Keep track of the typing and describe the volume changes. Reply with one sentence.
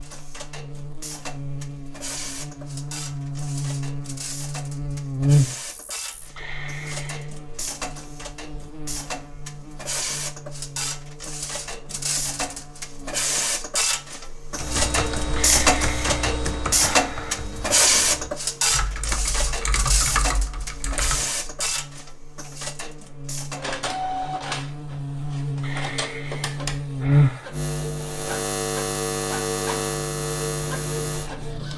The volume of the typing goes down, then up.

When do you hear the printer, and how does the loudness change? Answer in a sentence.
The printer can be heard from 0.0 to 31.7 s, getting louder then quieter.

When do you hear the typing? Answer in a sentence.
You can hear the typing from 14.5 to 21.3 s.